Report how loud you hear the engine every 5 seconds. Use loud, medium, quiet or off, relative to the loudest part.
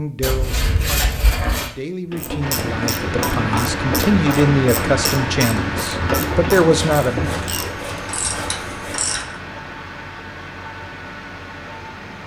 loud, loud, medium.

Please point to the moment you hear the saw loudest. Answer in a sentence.
The volume of the saw peaks at 1 second.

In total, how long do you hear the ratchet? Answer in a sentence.
The ratchet can be heard for 7 seconds in total.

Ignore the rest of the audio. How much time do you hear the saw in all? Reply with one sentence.
The saw can be heard for 4 seconds in total.